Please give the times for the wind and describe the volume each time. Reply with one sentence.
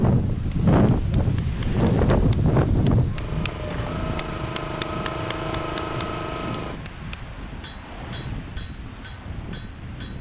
You can hear the wind from 0.0 to 10.1 s, getting quieter.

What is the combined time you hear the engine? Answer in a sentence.
You can hear the engine for 4 seconds altogether.